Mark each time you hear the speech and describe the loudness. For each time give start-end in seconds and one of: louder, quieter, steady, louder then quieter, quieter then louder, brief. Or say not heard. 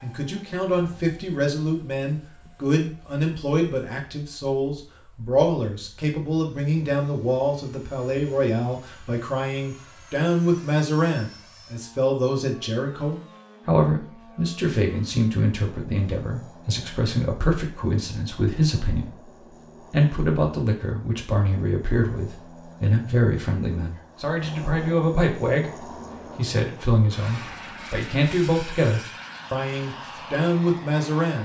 0.0-31.4 steady.